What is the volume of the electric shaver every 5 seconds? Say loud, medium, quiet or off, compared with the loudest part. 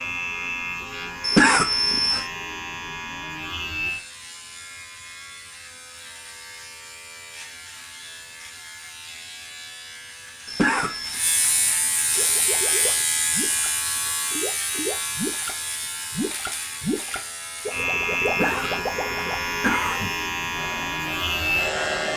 medium, quiet, loud, loud, loud.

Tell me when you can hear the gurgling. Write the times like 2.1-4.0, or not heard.
12.2-19.4.